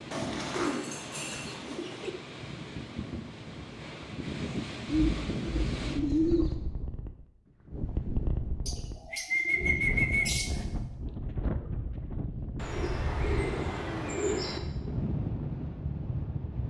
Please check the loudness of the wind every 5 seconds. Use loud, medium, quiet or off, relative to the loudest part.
medium, loud, loud, loud.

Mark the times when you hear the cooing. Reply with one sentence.
The cooing can be heard from 0.1 to 2.1 s, from 4.8 to 6.5 s, from 8.7 to 10.7 s and from 12.6 to 14.6 s.